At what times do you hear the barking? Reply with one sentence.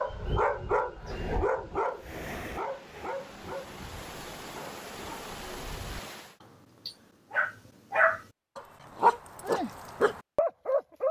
The barking can be heard from 0.0 to 11.0 s.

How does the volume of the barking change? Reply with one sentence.
The loudness of the barking goes down, then up.